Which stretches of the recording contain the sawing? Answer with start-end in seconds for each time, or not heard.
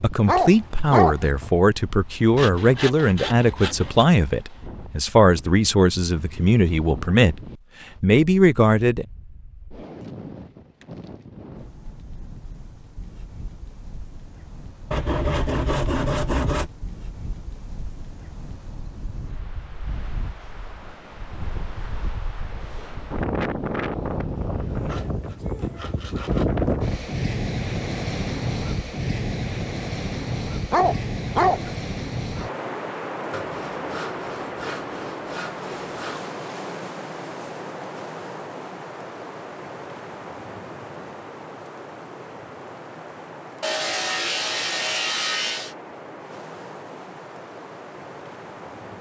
2.4-4.0, 14.9-16.7, 24.9-26.5, 33.3-36.2, 43.6-45.8.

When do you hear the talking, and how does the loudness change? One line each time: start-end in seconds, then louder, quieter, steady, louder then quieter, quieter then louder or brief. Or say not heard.
0.0-7.3 steady
8.0-9.1 brief.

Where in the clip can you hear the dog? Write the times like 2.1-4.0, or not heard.
0.2-1.3, 30.7-31.8.